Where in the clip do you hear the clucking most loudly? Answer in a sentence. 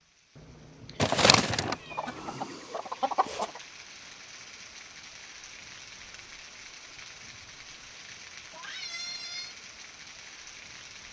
The volume of the clucking peaks at 1 second.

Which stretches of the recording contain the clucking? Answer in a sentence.
The clucking can be heard from 1.0 to 3.6 s.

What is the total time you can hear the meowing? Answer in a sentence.
The meowing can be heard for 3 seconds in total.